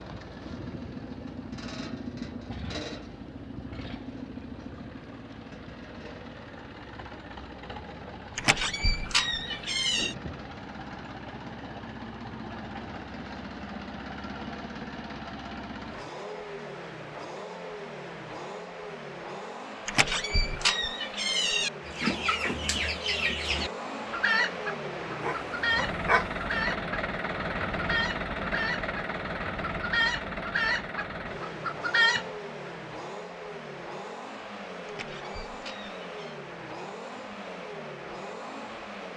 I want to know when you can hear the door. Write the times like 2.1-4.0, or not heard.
8.3-10.2, 19.9-21.7, 34.9-36.4.